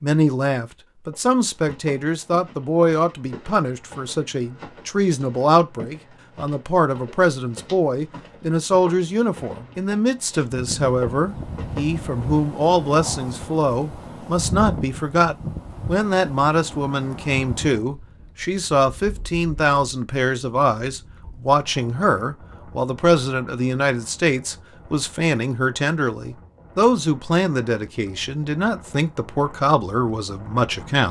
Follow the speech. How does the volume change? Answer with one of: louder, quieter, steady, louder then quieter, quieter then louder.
steady.